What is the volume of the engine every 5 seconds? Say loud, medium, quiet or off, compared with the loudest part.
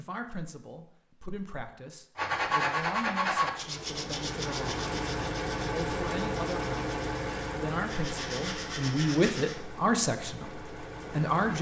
loud, loud, medium.